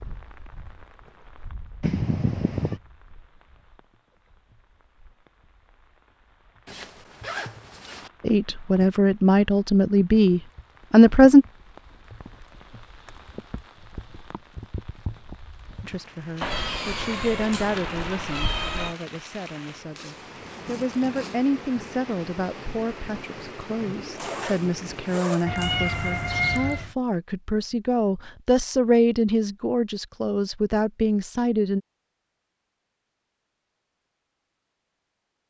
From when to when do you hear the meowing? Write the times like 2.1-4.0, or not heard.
1.8-2.8, 16.4-18.9, 25.4-26.9.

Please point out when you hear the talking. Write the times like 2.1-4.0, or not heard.
8.2-11.4, 15.8-31.8.